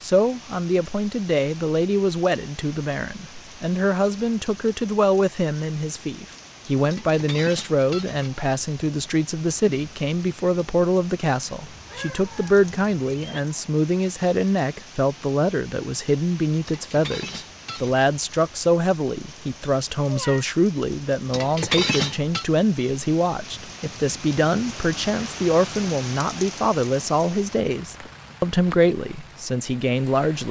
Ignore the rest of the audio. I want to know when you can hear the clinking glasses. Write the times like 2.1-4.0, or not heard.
6.9-8.4, 16.6-18.1, 21.3-22.4.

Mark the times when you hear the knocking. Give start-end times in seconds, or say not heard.
not heard.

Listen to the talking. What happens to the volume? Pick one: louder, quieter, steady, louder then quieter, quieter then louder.
steady.